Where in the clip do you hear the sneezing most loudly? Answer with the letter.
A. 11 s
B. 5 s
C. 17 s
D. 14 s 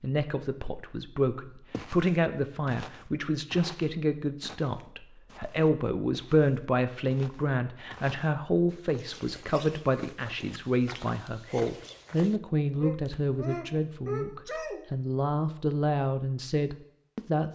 D.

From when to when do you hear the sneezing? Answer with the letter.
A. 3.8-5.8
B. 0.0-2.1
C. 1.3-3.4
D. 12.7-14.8
D.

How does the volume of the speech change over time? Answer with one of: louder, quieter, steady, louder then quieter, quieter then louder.
steady.